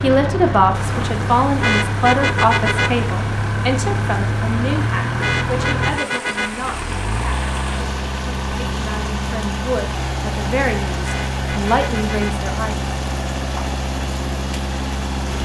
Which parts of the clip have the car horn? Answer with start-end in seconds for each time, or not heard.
1.6-3.1, 5.2-6.7, 11.0-12.4.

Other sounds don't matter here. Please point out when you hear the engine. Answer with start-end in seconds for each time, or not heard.
0.0-15.3.